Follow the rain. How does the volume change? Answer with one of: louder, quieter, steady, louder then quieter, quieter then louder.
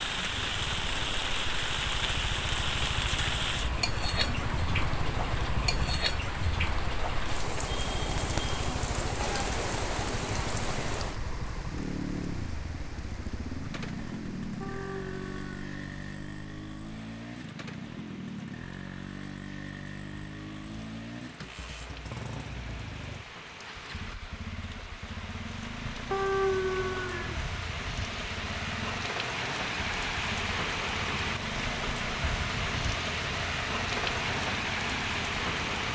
quieter then louder.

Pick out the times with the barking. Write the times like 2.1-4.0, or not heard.
14.6-15.7, 26.1-27.4.